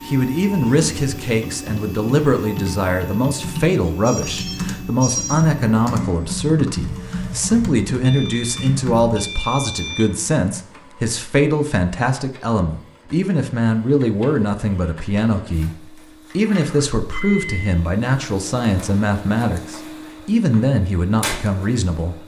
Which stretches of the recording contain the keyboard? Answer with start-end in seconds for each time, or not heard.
1.2-9.2.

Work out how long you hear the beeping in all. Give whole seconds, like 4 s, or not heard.
4 s.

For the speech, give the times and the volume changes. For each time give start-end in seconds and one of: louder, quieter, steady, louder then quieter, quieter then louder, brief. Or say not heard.
0.1-22.2 steady.